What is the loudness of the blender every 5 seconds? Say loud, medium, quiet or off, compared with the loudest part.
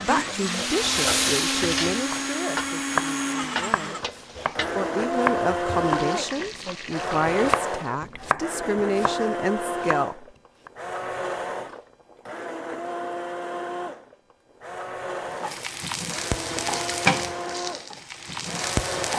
loud, loud, medium, medium.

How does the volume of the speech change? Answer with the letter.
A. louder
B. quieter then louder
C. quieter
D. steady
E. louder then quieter
B.